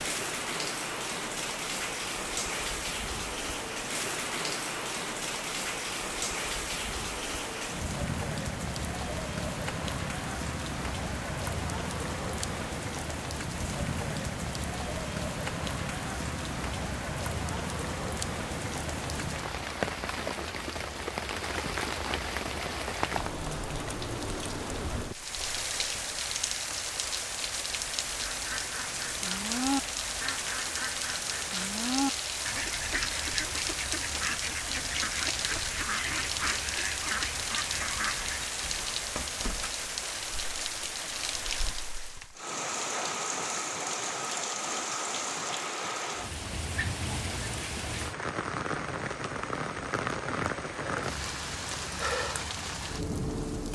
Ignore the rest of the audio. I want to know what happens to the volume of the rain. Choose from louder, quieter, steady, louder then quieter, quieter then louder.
steady.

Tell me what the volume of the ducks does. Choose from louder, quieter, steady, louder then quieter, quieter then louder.
steady.